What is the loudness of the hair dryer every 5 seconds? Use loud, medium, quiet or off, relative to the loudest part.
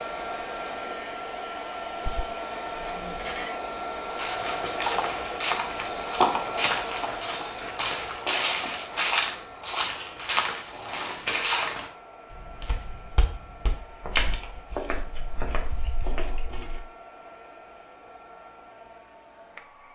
loud, loud, quiet, quiet.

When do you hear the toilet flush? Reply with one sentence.
The toilet flush can be heard from 2.8 to 3.6 s, from 9.8 to 10.3 s and from 15.1 to 16.9 s.